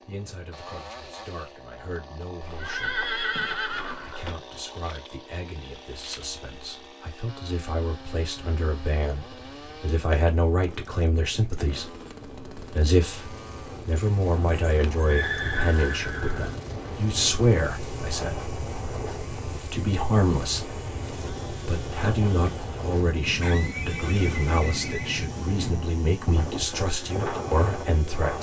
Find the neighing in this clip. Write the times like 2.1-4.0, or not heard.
2.4-4.3, 13.9-16.6, 23.4-25.2.